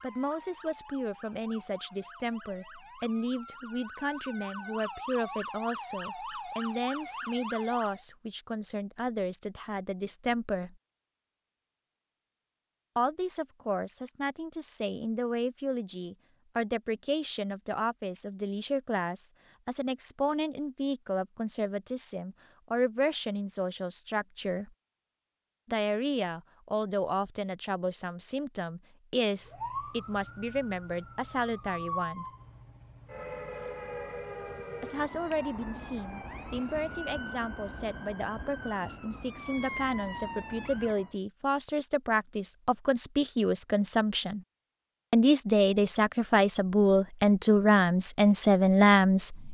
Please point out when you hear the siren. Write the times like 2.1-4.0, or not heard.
0.0-8.1, 29.4-41.1.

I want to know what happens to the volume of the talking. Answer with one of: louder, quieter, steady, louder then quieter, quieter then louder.
louder.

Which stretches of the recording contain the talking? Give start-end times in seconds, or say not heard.
0.0-10.8, 12.9-24.7, 25.6-32.2, 34.8-44.4, 45.1-49.4.